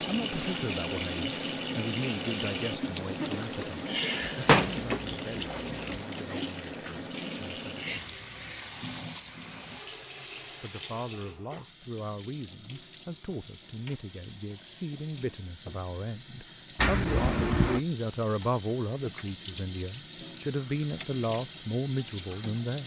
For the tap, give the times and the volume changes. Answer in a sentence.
You can hear the tap from 0.0 to 22.8 s, getting quieter then louder.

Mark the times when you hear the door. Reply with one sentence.
You can hear the door from 4.2 to 6.0 s and from 16.8 to 17.8 s.